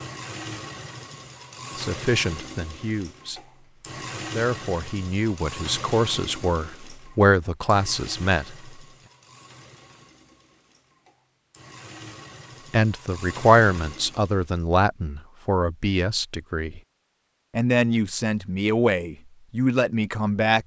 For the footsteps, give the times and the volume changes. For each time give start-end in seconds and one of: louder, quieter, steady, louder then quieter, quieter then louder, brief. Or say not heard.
not heard.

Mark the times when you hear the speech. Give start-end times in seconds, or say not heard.
1.8-3.4, 4.3-8.6, 12.7-16.8, 17.6-20.6.